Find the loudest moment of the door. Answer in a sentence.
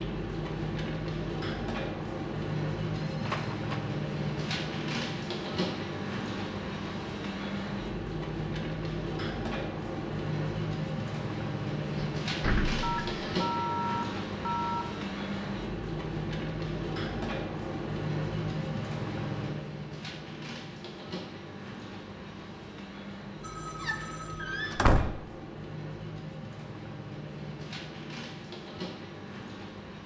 The loudest moment of the door is at 25 seconds.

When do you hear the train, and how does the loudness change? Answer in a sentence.
You can hear the train from 0.0 to 30.0 s, getting quieter.